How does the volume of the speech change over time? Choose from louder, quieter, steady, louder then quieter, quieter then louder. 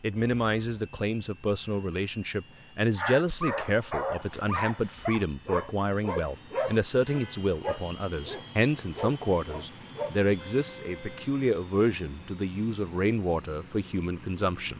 steady.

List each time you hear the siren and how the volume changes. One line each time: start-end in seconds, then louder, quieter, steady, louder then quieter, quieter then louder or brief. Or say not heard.
not heard.